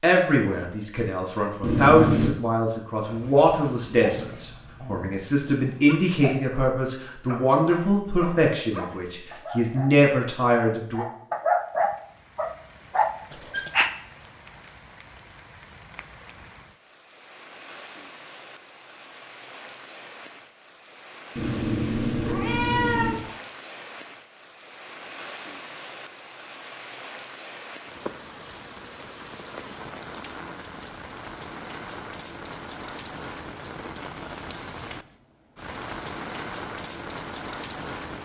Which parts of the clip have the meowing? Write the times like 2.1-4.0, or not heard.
1.6-2.4, 21.4-23.2.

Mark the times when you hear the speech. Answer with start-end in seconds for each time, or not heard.
0.0-11.1.